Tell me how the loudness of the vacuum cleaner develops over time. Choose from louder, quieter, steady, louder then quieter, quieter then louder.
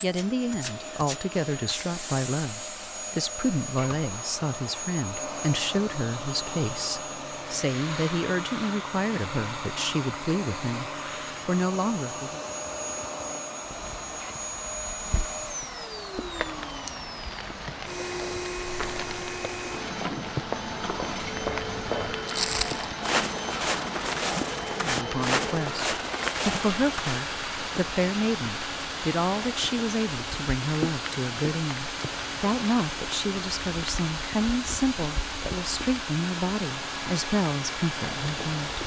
steady.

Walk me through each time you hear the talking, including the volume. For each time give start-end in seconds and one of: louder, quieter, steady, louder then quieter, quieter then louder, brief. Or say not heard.
0.0-12.4 steady
24.8-38.8 steady.